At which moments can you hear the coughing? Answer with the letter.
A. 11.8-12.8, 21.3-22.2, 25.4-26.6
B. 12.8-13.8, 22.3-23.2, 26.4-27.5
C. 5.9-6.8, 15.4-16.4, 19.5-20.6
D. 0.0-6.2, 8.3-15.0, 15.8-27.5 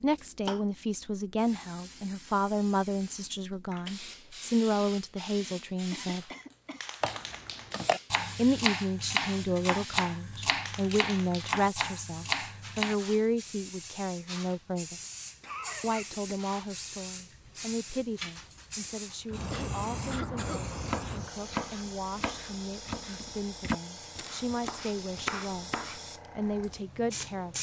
C.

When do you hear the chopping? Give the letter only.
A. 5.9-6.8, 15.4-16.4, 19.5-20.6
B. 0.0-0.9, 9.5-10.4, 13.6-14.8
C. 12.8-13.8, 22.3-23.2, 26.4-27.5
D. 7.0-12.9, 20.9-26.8
D.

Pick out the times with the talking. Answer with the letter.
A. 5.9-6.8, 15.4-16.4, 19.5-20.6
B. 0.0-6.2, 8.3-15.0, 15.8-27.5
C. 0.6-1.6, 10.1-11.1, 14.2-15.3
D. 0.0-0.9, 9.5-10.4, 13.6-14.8
B.